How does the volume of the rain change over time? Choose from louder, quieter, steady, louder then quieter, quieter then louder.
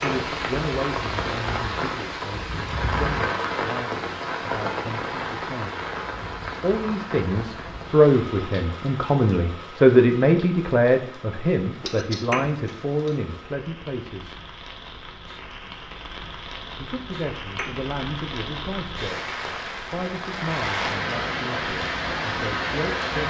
quieter then louder.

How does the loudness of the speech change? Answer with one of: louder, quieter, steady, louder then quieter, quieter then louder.
louder then quieter.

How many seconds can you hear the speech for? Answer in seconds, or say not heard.
20 s.